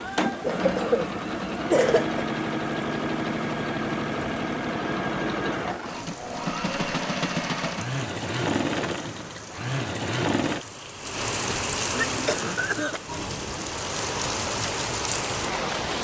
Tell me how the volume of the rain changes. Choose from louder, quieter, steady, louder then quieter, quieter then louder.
louder.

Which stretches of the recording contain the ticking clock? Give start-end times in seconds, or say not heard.
not heard.